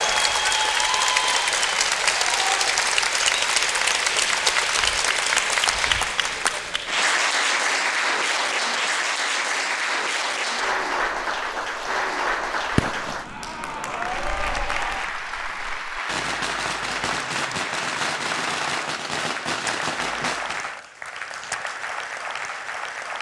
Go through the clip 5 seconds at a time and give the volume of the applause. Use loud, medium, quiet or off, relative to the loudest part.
loud, loud, medium, medium, medium.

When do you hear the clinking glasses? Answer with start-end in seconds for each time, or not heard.
not heard.